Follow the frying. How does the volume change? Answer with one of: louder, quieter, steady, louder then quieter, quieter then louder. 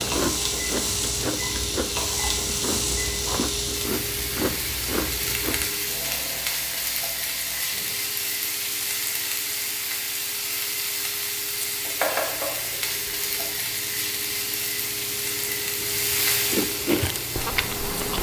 steady.